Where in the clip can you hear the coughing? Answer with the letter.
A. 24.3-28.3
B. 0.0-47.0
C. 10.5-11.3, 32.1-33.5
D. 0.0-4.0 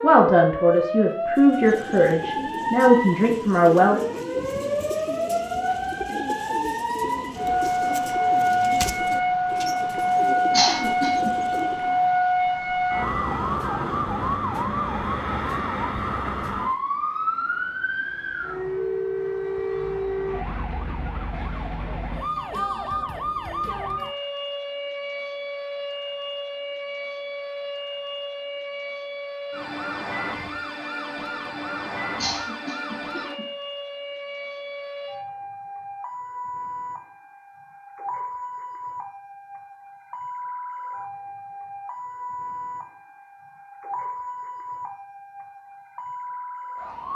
C.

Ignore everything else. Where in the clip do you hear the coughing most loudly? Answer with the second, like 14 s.
11 s.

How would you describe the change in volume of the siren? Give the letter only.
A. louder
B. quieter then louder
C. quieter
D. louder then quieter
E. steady
C.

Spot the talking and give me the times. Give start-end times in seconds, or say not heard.
0.0-4.0.